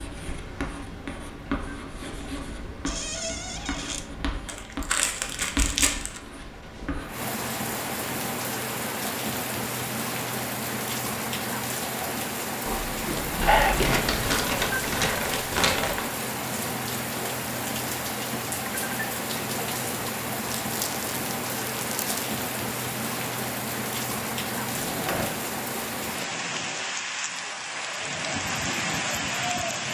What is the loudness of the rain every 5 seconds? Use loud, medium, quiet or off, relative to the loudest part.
quiet, loud, loud, loud, loud, loud.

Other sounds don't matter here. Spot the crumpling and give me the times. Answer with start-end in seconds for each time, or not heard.
4.5-6.2, 13.4-16.1, 20.4-22.2.